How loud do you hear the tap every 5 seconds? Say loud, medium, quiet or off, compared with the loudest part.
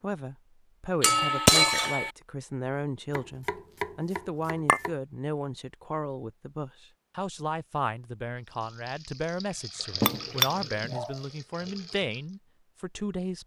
off, medium, loud.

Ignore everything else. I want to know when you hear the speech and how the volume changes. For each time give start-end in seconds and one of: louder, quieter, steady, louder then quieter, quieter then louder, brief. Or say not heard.
0.0-13.4 steady.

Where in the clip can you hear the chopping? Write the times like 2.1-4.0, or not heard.
3.1-5.0.